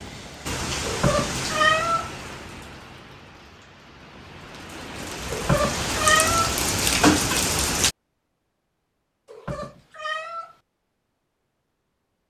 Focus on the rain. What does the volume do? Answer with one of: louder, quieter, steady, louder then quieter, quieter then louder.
quieter then louder.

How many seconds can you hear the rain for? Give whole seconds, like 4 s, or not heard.
8 s.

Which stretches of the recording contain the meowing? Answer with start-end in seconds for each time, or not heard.
0.8-2.1, 5.3-6.5, 9.2-10.6.